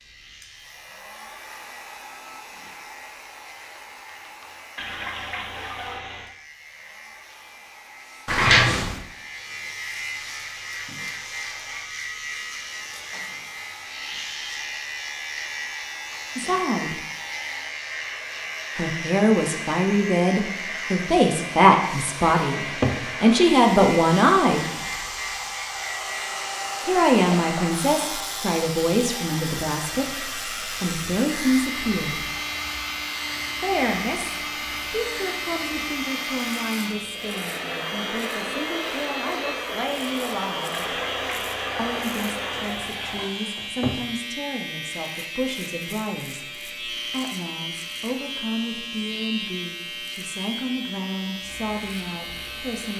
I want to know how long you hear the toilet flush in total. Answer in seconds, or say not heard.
4 s.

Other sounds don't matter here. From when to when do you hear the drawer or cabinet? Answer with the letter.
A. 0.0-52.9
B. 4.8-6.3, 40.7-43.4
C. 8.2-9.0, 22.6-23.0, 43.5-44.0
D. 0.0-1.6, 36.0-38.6
C.